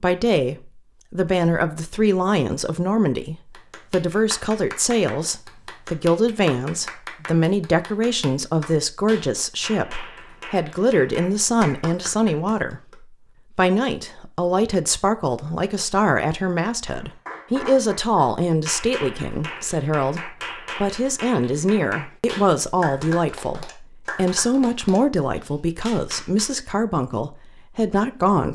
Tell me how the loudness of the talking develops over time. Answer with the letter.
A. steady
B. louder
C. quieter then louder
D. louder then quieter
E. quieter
A.